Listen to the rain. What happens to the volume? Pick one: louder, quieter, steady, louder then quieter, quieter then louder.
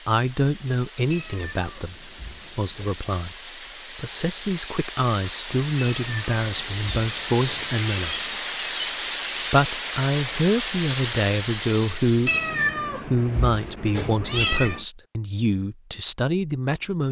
louder.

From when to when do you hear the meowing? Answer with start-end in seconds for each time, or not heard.
1.1-3.0, 5.8-8.4, 12.2-14.8.